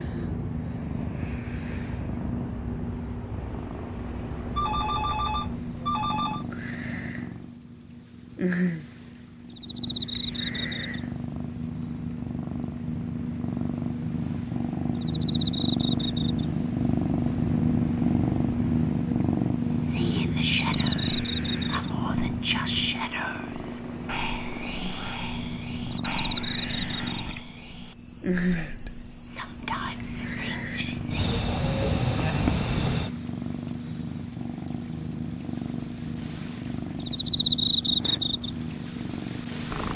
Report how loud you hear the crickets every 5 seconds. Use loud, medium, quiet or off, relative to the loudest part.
quiet, medium, medium, medium, medium, loud, loud, loud.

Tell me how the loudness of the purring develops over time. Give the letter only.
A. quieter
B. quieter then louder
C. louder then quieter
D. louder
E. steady
C.